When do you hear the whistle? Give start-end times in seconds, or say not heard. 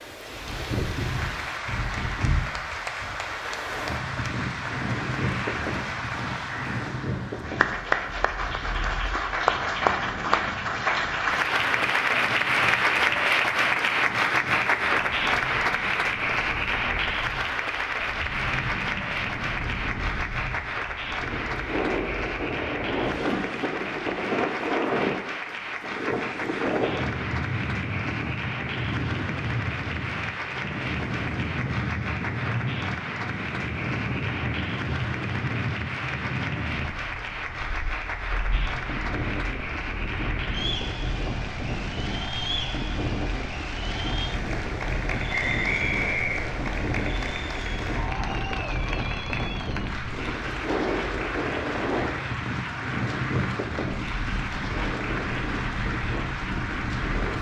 45.3-46.6.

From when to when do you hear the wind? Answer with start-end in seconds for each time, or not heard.
0.0-57.3.